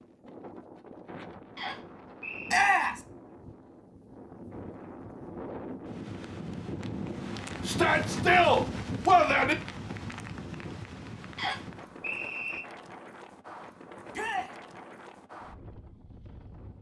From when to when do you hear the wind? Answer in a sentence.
You can hear the wind from 0.0 to 16.7 s.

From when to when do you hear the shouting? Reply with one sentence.
The shouting can be heard from 2.5 to 3.0 s, from 7.7 to 9.6 s and from 14.1 to 14.5 s.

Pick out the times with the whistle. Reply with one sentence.
You can hear the whistle from 1.6 to 2.6 s and from 11.3 to 12.6 s.